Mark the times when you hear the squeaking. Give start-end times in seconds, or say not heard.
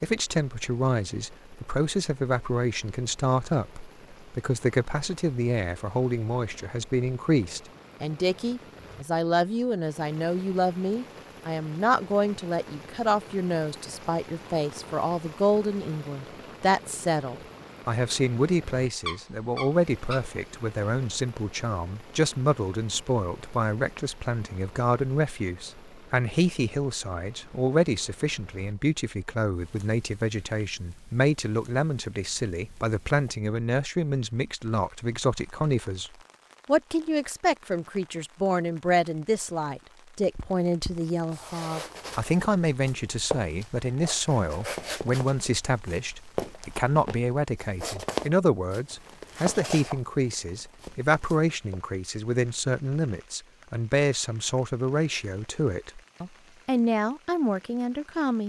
18.9-20.3.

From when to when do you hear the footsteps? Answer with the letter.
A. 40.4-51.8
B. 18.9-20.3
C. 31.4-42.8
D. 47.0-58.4
A.